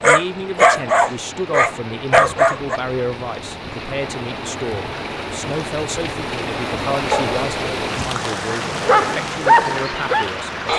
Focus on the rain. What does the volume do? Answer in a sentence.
The volume of the rain goes up.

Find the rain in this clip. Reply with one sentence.
The rain can be heard from 0.0 to 10.7 s.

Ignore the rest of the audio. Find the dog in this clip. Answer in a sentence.
The dog can be heard from 0.0 to 2.8 s and from 7.1 to 10.7 s.